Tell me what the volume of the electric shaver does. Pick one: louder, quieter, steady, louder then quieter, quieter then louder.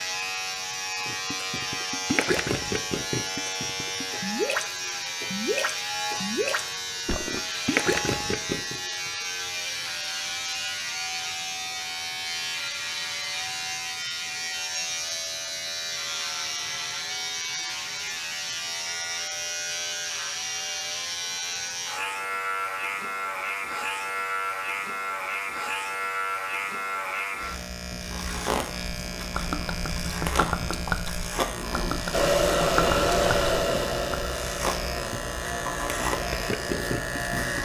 steady.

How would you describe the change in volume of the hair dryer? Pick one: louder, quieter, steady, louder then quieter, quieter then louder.
quieter.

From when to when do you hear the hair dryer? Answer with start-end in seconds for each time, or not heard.
32.1-37.6.